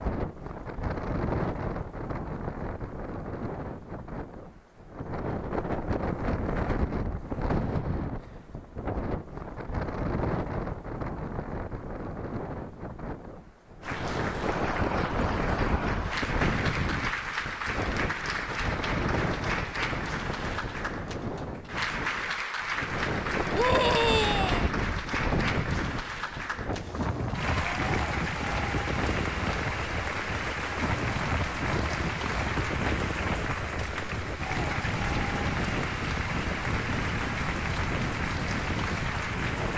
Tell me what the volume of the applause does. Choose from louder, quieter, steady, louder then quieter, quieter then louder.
steady.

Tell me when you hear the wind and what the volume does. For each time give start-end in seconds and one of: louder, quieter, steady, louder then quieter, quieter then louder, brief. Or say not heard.
0.0-39.7 steady.